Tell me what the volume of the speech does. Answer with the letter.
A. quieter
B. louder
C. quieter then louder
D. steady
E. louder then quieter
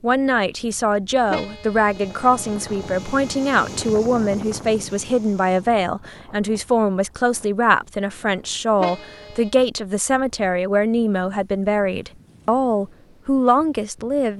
D.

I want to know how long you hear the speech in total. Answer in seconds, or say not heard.
14 s.